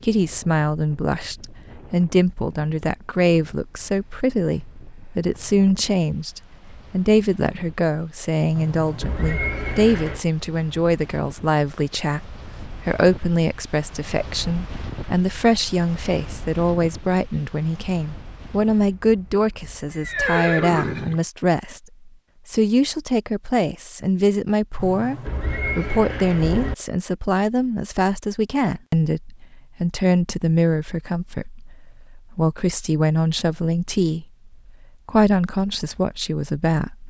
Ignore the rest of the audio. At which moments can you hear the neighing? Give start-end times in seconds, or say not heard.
8.6-10.2, 19.9-21.2, 24.8-26.8.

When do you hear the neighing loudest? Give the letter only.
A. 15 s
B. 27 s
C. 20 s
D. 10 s
C.